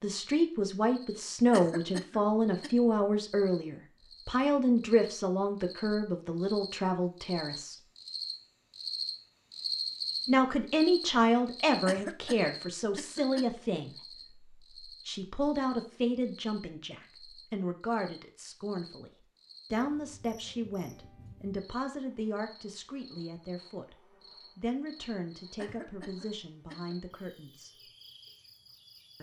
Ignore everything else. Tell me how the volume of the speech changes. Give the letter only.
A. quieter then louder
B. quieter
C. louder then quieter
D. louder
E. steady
B.